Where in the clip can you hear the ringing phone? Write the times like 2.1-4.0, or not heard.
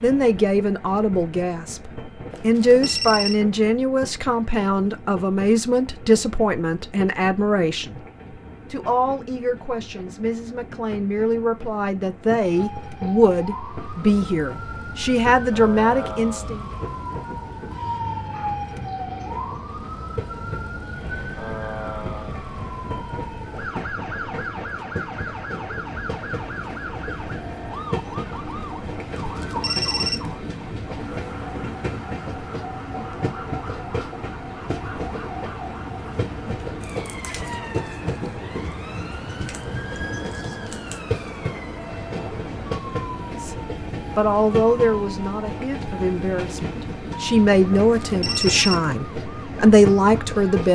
2.3-3.4, 29.1-30.4, 47.8-49.0.